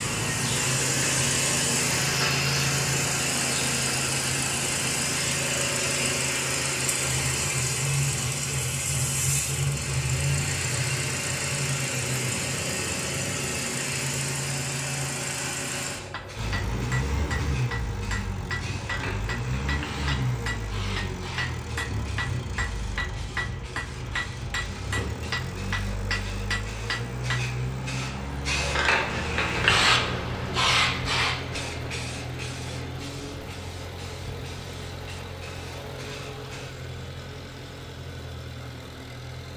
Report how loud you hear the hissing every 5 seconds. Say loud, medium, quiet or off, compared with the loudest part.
off, off, off, quiet, quiet, loud, loud, quiet.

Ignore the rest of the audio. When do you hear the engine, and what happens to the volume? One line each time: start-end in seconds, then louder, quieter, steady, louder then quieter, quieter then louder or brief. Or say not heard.
0.0-39.5 quieter.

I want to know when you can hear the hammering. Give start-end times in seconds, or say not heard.
15.9-27.4.